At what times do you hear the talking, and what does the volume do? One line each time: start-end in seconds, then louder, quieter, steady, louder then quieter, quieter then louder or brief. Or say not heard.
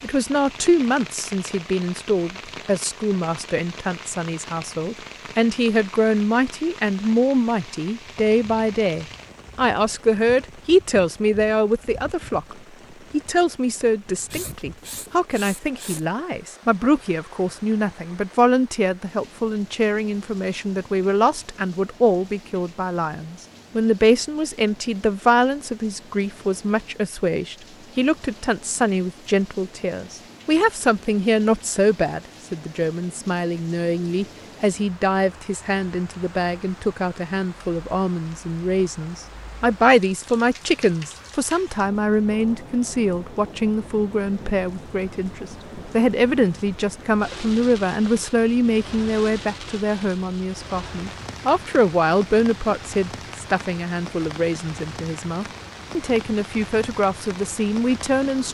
0.0-58.5 steady.